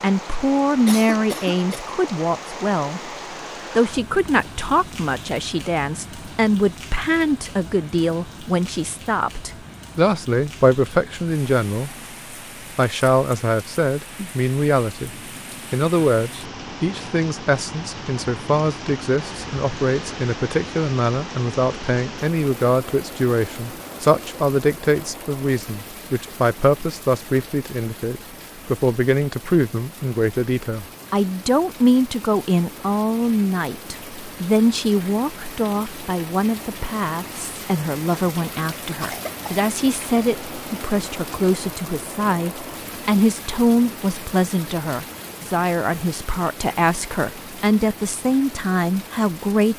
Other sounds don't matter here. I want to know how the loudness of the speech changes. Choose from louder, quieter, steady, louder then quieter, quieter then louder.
steady.